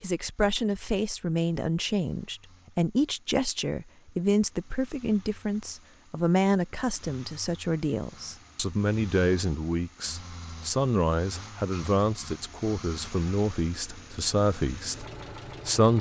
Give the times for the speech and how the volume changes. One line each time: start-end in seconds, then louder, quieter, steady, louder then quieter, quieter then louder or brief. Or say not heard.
0.0-15.9 steady.